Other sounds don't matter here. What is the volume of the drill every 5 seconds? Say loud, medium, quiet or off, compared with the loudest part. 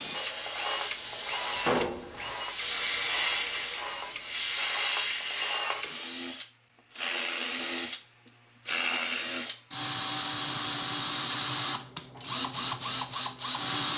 medium, loud, loud.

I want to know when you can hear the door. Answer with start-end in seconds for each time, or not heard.
1.4-2.4.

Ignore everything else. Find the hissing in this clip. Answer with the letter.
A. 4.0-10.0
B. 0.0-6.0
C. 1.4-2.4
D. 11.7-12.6
B.